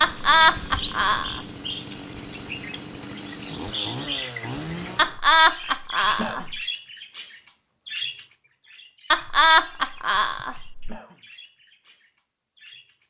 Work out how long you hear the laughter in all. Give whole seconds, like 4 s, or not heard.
5 s.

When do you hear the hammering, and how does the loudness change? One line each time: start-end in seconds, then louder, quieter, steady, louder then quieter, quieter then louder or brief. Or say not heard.
not heard.